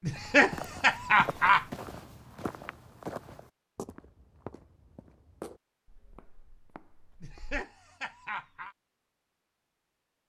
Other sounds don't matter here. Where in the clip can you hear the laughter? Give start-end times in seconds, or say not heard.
0.0-1.6, 7.2-8.8.